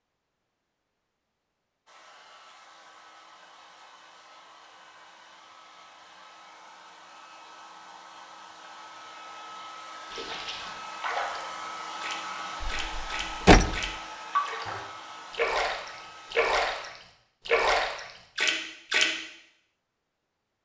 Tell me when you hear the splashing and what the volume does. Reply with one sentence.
You can hear the splashing from 10.1 to 19.1 s, getting louder.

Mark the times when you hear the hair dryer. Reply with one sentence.
The hair dryer can be heard from 1.9 to 16.9 s.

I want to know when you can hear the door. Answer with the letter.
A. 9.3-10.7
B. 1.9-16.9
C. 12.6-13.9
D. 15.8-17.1
C.